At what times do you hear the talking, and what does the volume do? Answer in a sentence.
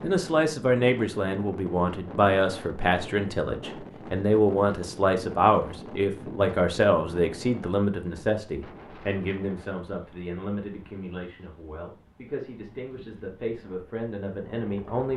You can hear the talking from 0.0 to 15.1 s, getting quieter.